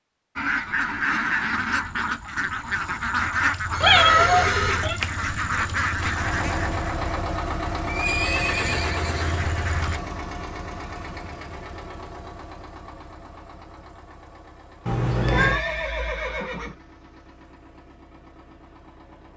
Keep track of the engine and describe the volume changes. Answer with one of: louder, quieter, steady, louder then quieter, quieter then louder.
quieter.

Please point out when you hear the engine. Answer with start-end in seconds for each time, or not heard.
5.9-19.3.